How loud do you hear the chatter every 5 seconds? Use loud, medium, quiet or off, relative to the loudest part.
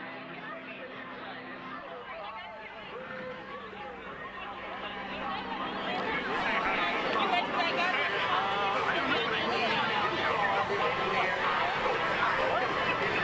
quiet, loud, loud.